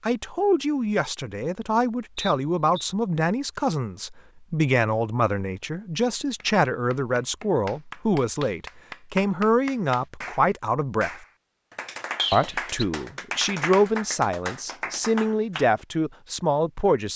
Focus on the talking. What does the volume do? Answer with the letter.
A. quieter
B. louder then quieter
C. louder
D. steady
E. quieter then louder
D.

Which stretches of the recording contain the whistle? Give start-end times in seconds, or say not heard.
2.1-3.0, 12.2-12.8.